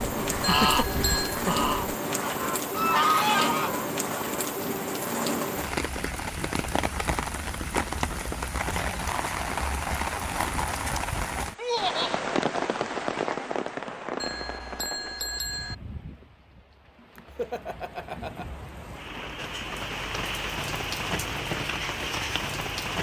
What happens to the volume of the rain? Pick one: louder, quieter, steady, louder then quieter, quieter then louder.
quieter then louder.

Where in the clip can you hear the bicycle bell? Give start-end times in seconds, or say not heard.
0.4-1.4, 14.2-15.8.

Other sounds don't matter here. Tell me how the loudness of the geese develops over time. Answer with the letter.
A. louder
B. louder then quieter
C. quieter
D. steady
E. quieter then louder
E.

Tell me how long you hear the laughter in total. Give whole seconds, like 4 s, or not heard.
3 s.